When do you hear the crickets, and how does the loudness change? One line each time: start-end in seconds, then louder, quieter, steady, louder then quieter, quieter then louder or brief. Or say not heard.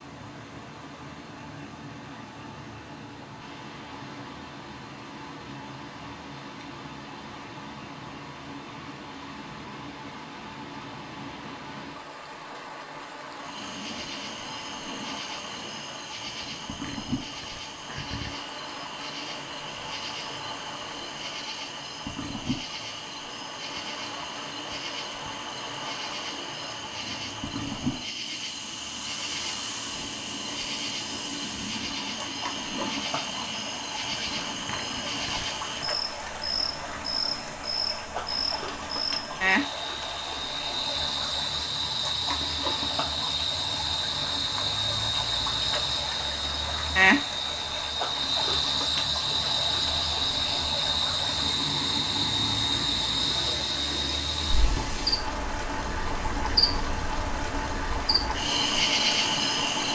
13.3-59.9 louder.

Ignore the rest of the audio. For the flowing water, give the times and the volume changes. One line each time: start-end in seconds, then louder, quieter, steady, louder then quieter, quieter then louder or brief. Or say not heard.
0.0-59.9 louder.